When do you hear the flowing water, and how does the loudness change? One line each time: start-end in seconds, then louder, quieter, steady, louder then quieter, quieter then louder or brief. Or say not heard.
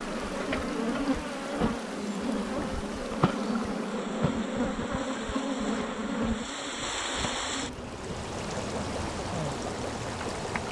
0.0-10.6 louder.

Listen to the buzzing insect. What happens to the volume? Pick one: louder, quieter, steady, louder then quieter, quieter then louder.
quieter.